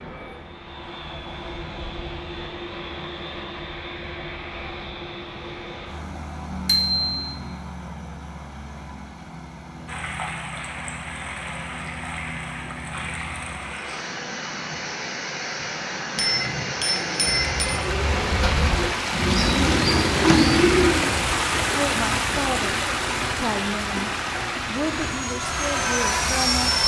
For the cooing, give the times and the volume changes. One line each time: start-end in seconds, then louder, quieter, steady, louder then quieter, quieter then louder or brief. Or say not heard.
17.5-22.6 louder then quieter.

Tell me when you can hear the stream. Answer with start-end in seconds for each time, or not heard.
9.8-26.8.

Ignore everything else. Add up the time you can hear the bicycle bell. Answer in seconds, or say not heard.
2 s.